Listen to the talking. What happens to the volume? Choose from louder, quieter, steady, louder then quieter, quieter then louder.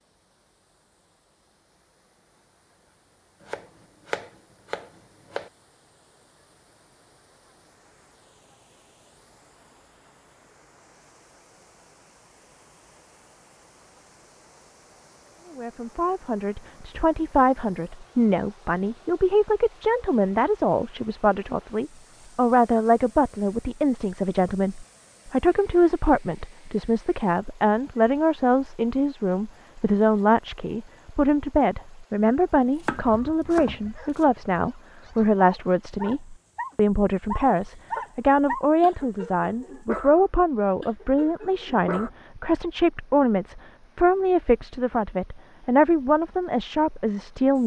steady.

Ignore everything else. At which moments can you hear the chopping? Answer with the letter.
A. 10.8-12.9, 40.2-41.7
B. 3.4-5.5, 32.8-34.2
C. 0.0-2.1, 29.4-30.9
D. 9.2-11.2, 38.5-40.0
B.